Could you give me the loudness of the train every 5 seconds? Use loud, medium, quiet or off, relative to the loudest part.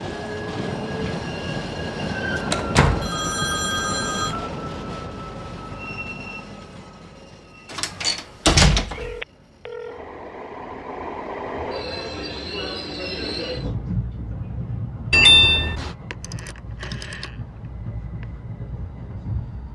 loud, medium, loud, medium.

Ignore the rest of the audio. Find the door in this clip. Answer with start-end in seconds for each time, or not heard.
2.5-3.1, 7.7-9.2, 15.1-15.9.